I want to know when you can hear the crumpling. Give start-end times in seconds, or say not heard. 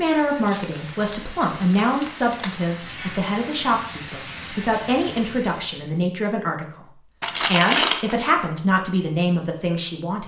0.5-2.7, 7.2-8.2.